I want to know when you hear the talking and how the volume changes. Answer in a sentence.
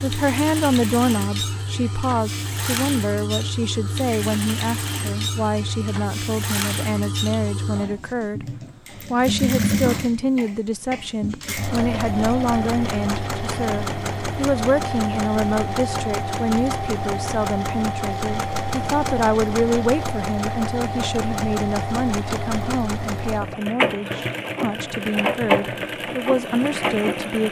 You can hear the talking from 0.0 to 27.4 s, at a steady volume.